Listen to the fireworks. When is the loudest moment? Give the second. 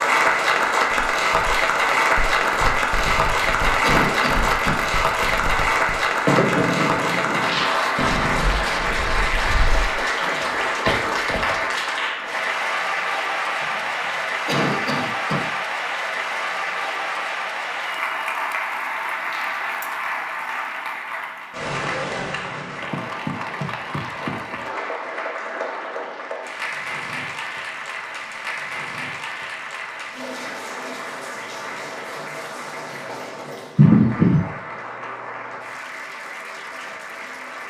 6 s.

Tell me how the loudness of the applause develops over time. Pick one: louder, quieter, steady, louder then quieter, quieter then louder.
quieter.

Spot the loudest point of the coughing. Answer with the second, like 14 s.
34 s.